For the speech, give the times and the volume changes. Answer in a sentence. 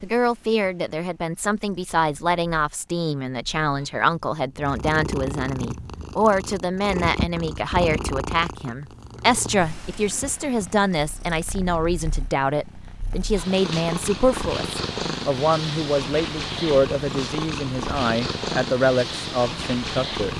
You can hear the speech from 0.0 to 20.3 s, at a steady volume.